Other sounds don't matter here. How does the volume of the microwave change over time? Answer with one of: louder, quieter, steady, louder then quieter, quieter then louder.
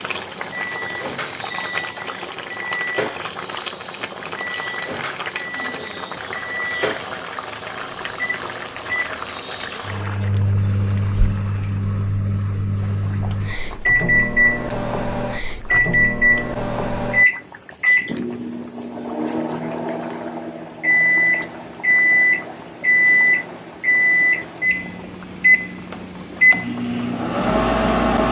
louder.